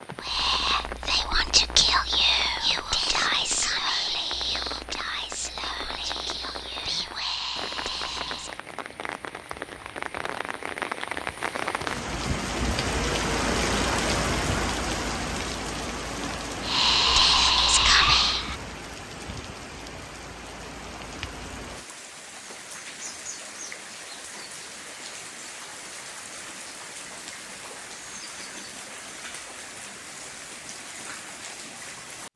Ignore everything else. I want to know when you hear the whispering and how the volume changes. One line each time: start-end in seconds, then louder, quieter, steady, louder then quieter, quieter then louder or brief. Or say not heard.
0.2-8.6 quieter
16.6-18.6 brief.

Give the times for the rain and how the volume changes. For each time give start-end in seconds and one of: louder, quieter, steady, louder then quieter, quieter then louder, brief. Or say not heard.
0.0-32.3 louder then quieter.